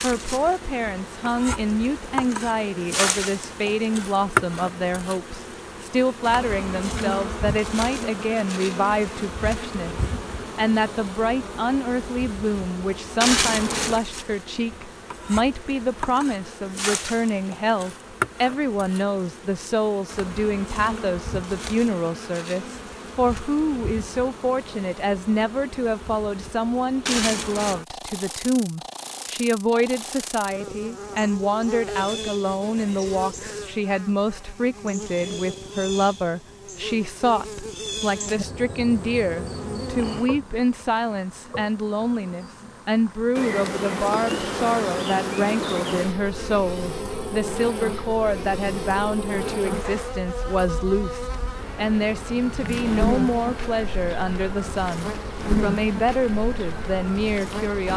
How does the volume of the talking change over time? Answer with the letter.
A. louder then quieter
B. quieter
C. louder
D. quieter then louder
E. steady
E.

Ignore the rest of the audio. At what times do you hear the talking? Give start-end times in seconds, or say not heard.
0.0-57.9.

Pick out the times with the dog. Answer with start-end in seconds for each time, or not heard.
not heard.